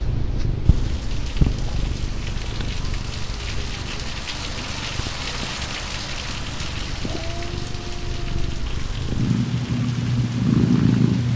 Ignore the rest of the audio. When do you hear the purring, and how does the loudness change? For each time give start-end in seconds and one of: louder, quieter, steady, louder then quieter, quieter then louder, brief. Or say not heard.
0.0-11.3 quieter then louder.